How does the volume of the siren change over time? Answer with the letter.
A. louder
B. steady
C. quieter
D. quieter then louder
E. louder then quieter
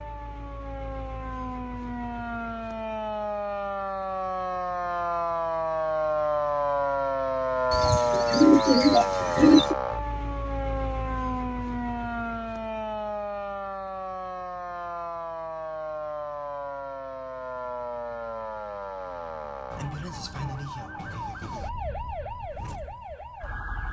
E.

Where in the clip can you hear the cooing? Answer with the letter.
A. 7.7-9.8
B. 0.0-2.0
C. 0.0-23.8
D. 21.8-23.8
A.